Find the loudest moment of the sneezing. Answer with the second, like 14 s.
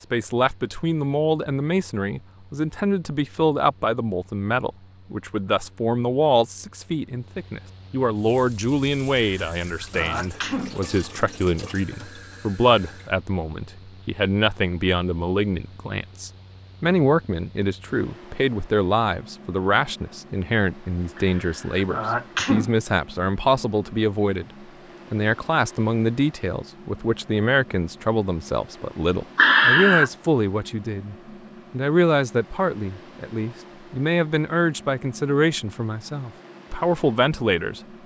30 s.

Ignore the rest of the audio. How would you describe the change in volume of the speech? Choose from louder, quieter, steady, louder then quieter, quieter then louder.
steady.